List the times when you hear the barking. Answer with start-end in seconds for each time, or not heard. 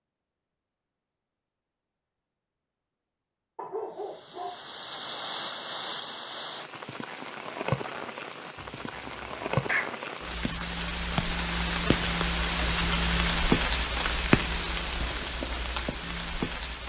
3.5-4.7, 8.6-9.9.